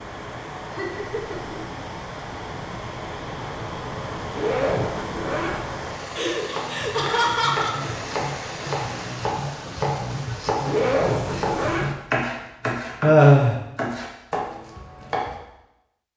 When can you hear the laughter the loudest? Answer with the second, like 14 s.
13 s.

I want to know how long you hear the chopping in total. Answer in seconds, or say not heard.
9 s.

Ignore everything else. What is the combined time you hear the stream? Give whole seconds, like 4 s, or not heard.
12 s.